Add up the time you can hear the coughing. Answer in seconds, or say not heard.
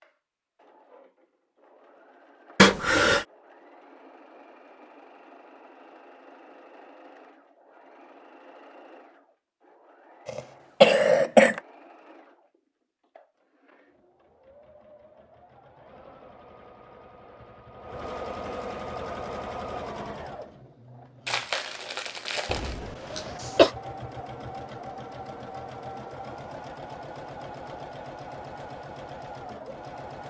3 s.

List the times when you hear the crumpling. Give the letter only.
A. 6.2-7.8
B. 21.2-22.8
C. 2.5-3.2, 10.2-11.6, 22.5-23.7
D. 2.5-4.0
B.